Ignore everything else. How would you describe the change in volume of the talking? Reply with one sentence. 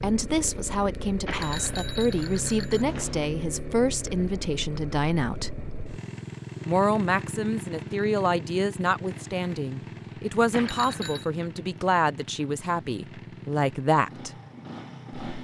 The loudness of the talking stays about the same.